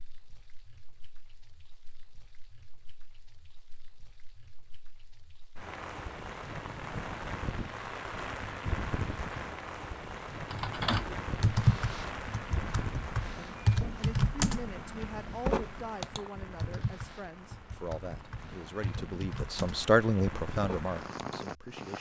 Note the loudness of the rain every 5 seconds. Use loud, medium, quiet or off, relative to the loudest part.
quiet, loud, loud, medium, loud.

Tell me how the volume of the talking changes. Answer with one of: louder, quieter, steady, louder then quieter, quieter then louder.
louder.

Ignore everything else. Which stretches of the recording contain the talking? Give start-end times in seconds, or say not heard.
13.3-21.9.